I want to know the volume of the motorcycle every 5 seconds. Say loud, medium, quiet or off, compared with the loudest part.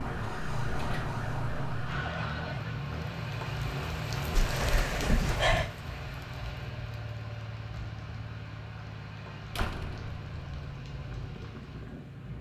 loud, medium, medium.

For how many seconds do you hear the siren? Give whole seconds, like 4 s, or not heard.
3 s.